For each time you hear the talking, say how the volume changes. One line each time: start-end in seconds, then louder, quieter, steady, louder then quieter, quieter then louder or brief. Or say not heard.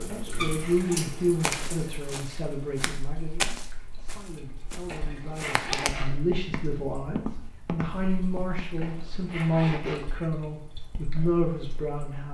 0.0-12.2 quieter then louder.